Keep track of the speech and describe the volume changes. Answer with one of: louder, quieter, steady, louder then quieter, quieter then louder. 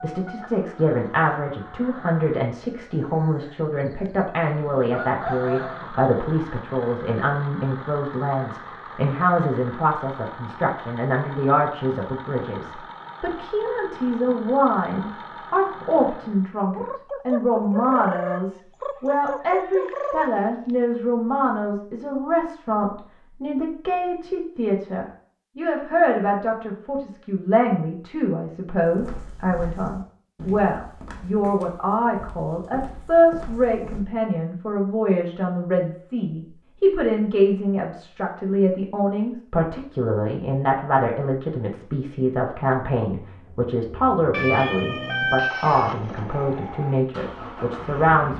steady.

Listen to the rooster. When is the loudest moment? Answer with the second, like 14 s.
45 s.